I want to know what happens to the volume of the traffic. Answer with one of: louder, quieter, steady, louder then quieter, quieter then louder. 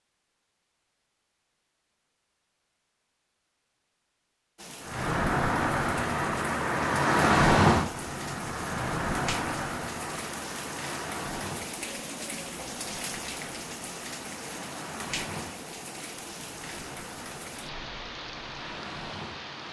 quieter.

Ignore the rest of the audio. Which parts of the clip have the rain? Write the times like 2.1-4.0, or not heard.
4.5-19.6.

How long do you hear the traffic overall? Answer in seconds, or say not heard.
15 s.